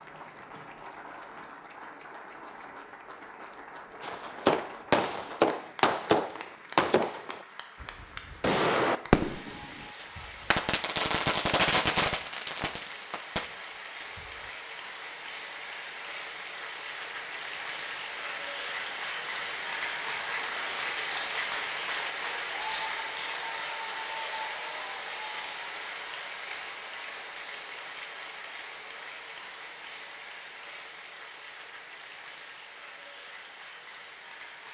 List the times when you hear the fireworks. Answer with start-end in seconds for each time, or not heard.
4.0-14.5.